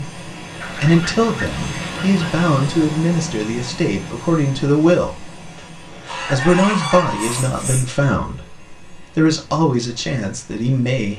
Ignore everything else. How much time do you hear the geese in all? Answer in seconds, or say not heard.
3 s.